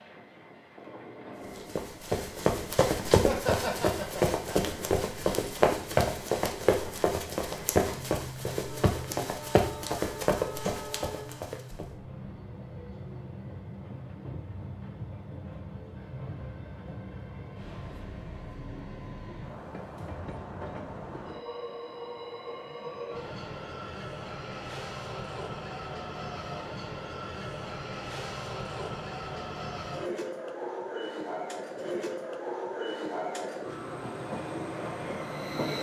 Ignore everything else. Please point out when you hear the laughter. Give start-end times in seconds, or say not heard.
3.2-4.7.